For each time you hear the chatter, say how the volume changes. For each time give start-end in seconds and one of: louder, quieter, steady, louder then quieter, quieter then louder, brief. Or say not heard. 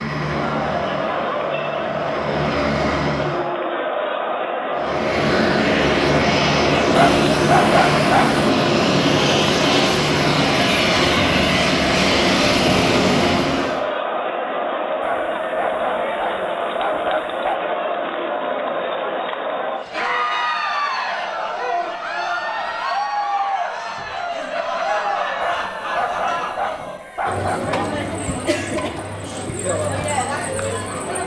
0.0-31.2 steady.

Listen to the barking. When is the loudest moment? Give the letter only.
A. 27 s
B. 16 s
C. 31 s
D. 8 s
D.